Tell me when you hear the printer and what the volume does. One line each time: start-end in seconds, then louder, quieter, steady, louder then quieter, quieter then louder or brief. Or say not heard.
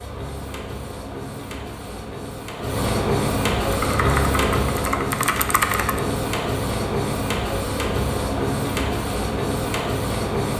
0.0-10.5 louder.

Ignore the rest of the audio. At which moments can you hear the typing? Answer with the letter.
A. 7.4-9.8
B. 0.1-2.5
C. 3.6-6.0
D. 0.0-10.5
C.